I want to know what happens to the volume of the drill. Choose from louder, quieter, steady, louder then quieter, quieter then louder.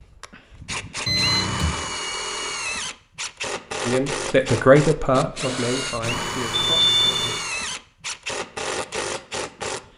steady.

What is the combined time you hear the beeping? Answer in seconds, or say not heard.
2 s.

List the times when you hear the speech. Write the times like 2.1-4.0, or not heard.
3.9-7.3.